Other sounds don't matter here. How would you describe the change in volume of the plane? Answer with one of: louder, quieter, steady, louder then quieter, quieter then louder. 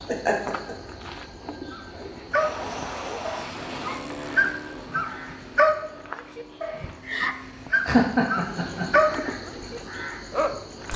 quieter.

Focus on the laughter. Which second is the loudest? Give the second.
8 s.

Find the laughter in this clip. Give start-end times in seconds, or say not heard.
0.1-0.8, 7.8-8.8.